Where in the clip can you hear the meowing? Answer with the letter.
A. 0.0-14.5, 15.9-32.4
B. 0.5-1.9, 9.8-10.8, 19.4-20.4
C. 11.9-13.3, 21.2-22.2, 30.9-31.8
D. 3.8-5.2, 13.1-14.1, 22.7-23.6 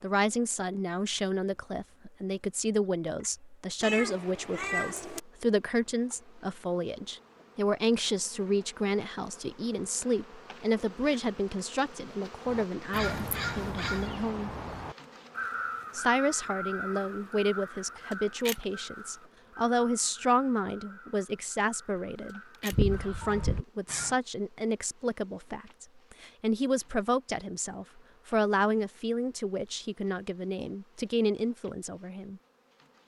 D.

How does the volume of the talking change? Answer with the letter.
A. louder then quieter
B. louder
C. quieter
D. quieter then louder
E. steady
E.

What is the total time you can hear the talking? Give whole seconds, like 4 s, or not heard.
31 s.